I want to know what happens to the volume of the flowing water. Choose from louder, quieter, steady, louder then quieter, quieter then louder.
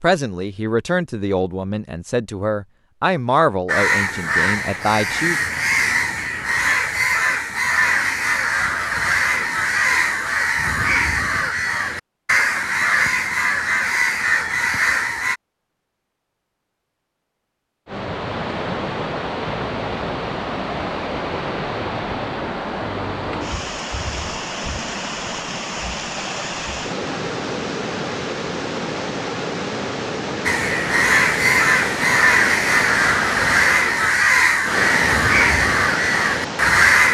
steady.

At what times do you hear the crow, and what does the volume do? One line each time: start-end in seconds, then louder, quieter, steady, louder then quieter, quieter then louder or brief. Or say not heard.
3.6-15.4 steady
30.4-37.0 steady.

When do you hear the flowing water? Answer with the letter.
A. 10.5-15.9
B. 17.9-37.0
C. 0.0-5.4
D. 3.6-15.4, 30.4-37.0
B.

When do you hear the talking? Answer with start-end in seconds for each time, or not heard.
0.0-5.4.